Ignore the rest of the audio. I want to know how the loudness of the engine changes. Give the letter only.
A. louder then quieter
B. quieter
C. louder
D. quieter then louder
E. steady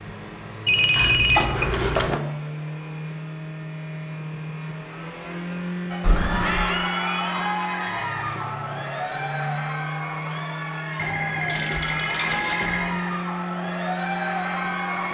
E.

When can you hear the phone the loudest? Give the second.
1 s.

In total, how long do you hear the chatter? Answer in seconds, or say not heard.
9 s.